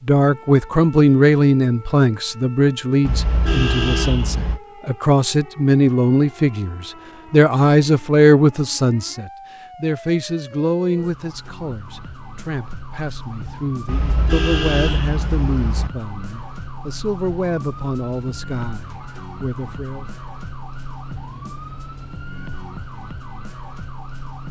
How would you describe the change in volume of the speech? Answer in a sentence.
The loudness of the speech goes down.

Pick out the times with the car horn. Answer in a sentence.
You can hear the car horn from 3.0 to 4.6 s and from 13.8 to 15.9 s.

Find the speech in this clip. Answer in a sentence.
You can hear the speech from 0.0 to 20.1 s.